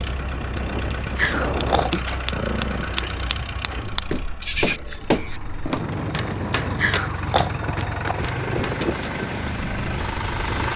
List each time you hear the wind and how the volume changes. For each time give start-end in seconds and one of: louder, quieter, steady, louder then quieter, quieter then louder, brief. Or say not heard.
0.0-10.7 quieter then louder.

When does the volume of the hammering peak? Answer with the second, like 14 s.
5 s.